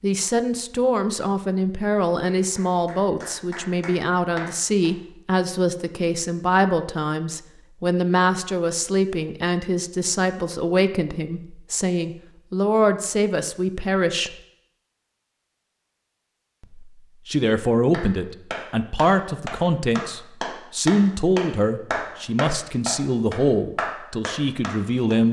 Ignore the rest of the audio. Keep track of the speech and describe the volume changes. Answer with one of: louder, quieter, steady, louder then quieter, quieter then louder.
steady.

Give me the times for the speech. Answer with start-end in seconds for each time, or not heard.
0.0-14.3, 16.6-25.2.